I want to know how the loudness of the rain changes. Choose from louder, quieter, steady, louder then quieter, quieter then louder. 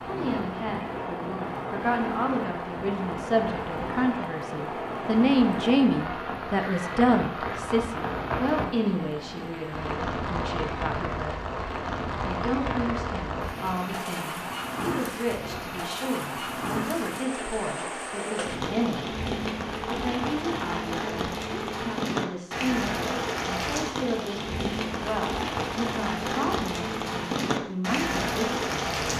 steady.